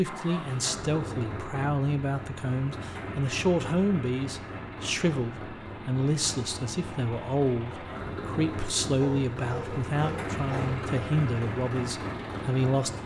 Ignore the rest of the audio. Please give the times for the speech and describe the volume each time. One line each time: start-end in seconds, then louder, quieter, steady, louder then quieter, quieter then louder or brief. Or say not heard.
0.0-12.9 steady.